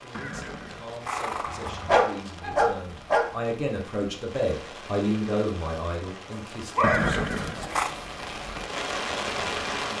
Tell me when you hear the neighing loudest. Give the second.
7 s.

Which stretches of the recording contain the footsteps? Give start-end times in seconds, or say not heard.
not heard.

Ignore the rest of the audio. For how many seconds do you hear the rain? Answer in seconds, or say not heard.
10 s.